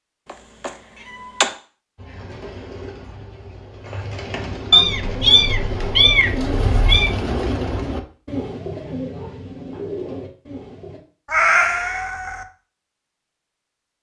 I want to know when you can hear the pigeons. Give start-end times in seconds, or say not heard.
1.9-11.0.